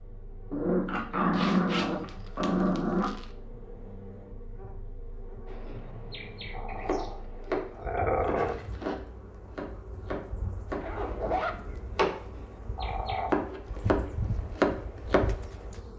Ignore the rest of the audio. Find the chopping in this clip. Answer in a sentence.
You can hear the chopping from 5.5 to 15.3 s.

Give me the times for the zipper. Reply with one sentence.
The zipper can be heard from 1.3 to 3.3 s, from 8.3 to 9.0 s and from 10.8 to 11.6 s.